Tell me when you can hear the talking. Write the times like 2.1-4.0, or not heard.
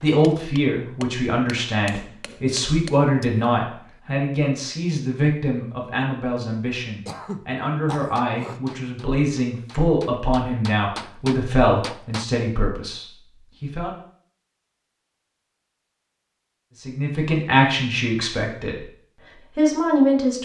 0.0-13.9, 16.8-18.9, 19.6-20.4.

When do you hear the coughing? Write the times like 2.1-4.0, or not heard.
7.0-8.6.